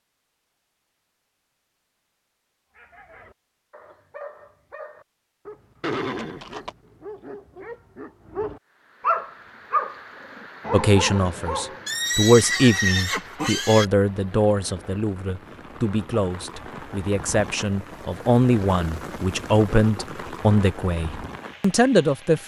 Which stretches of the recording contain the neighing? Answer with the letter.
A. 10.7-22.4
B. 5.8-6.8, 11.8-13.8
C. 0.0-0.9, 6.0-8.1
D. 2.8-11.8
B.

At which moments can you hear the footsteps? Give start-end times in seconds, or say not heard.
not heard.